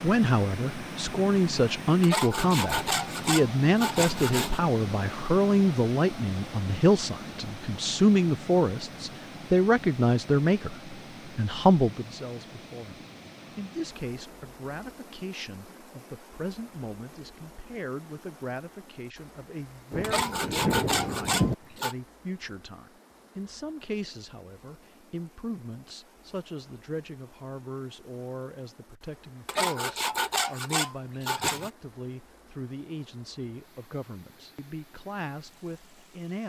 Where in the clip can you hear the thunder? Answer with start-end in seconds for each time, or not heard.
19.9-21.6.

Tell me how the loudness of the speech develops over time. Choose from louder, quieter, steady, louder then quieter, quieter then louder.
quieter.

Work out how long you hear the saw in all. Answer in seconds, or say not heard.
7 s.